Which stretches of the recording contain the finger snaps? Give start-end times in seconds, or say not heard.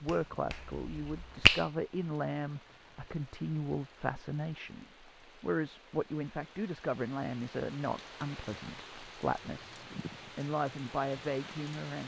0.1-1.6.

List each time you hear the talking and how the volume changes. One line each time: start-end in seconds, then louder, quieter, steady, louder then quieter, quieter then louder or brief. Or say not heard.
0.0-12.0 steady.